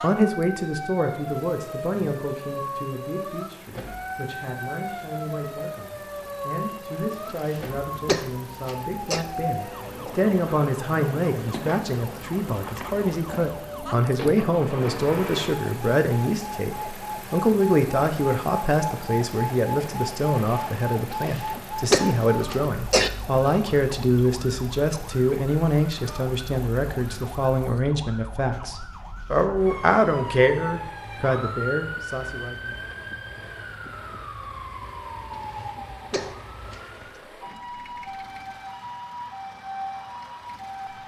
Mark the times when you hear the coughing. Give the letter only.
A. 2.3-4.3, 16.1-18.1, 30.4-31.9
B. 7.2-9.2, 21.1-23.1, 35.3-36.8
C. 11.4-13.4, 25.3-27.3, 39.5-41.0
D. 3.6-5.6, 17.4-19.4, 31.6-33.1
B.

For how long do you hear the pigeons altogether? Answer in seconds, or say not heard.
not heard.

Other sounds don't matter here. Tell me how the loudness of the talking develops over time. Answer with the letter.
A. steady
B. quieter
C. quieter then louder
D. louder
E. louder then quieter
D.